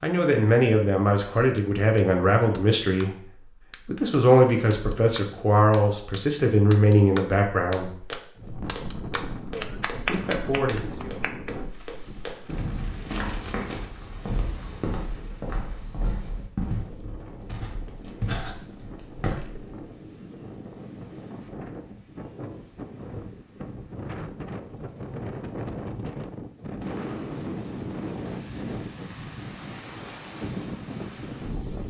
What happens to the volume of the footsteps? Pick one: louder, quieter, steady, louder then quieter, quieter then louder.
louder.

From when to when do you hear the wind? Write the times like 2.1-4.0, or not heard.
8.3-31.8.